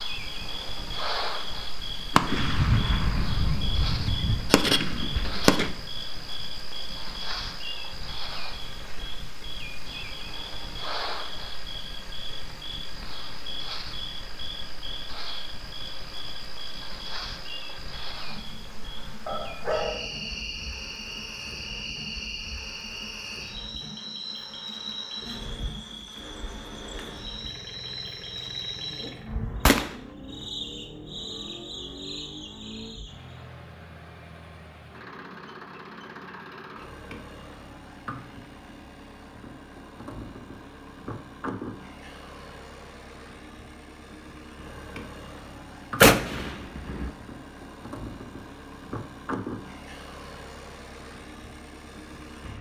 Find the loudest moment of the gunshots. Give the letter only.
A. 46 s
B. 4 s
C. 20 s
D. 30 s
A.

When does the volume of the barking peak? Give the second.
20 s.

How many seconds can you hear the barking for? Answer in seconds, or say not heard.
2 s.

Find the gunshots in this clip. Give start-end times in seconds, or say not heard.
2.1-5.7, 29.2-30.4, 46.0-47.1.